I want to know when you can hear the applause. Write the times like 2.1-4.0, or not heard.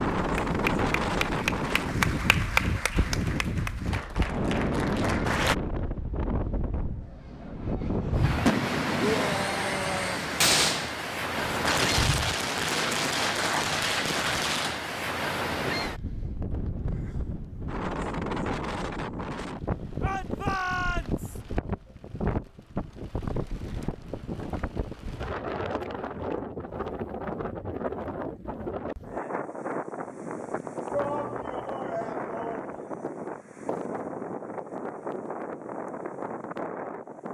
0.1-5.5.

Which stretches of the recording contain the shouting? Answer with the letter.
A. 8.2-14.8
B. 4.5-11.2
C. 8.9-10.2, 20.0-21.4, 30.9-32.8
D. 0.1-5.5
C.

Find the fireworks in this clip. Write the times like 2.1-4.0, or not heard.
8.2-14.8.